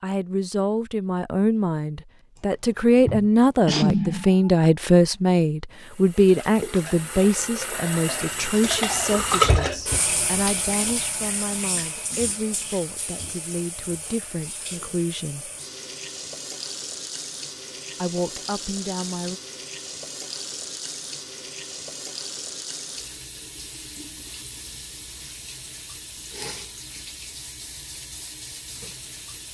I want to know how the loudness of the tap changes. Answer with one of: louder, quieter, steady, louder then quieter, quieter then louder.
quieter.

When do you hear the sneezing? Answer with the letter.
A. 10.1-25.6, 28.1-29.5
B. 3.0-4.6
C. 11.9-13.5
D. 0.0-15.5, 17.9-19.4
B.